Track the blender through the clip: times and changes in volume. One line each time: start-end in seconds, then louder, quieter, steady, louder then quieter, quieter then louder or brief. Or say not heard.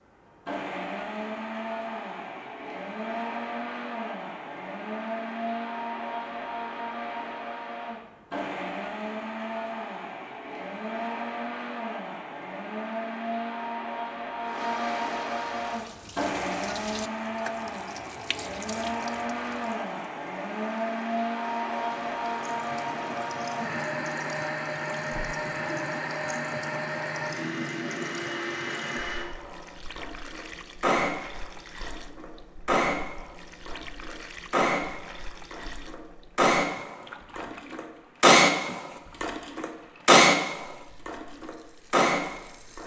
0.5-42.8 louder.